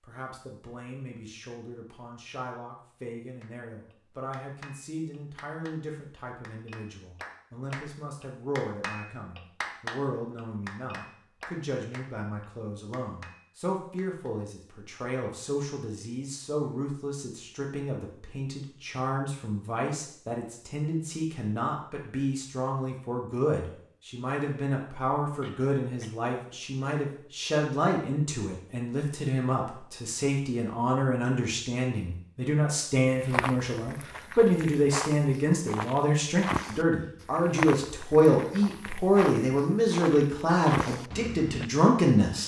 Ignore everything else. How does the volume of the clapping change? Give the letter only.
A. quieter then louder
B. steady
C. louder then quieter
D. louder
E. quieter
C.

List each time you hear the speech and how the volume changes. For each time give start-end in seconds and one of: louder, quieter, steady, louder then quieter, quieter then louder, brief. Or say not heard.
0.0-42.4 louder.